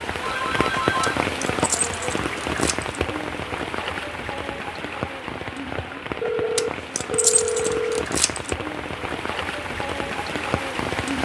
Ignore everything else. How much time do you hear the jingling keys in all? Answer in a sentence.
The jingling keys can be heard for 4 seconds in total.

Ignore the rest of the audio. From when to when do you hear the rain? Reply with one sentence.
You can hear the rain from 0.0 to 11.1 s.